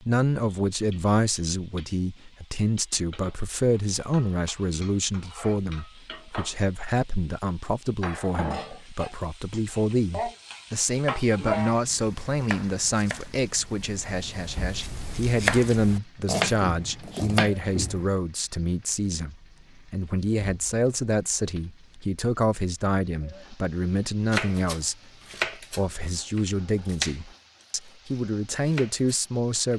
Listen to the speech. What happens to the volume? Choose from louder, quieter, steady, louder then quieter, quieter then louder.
steady.